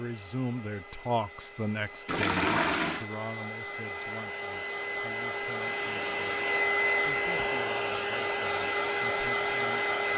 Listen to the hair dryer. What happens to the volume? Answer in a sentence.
The loudness of the hair dryer goes up.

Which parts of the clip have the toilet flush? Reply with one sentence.
You can hear the toilet flush from 2.0 to 3.0 s and from 5.7 to 6.7 s.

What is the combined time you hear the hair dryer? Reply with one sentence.
The hair dryer can be heard for 10 seconds in total.